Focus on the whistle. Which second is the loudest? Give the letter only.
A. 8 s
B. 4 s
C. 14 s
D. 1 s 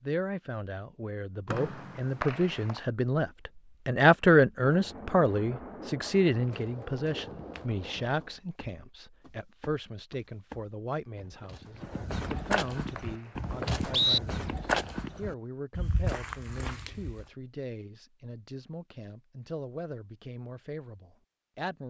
C.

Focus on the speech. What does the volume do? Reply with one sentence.
The volume of the speech goes down.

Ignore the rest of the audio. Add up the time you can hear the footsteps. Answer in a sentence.
The footsteps can be heard for 11 seconds in total.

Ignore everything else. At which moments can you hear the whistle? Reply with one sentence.
You can hear the whistle from 1.5 to 2.8 s and from 12.2 to 14.2 s.